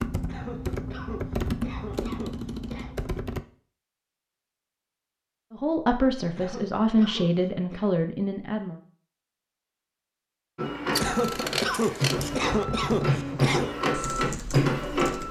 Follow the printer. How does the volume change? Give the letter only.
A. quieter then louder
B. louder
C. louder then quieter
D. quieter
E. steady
B.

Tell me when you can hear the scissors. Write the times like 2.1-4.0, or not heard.
10.9-12.4.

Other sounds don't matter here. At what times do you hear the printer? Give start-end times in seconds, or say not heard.
10.6-15.2.